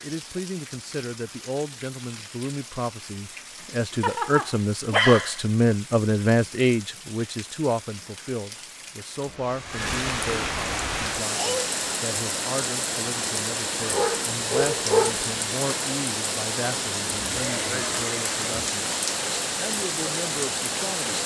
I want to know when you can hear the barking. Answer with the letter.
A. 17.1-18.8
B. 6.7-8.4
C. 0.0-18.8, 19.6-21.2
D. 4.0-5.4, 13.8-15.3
D.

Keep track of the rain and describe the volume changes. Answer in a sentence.
The loudness of the rain goes up.